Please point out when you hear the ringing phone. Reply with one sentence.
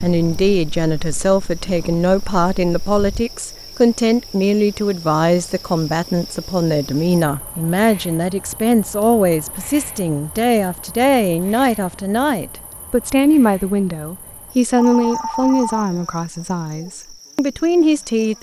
The ringing phone can be heard from 14.8 to 15.8 s.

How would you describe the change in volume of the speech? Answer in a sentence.
The volume of the speech stays about the same.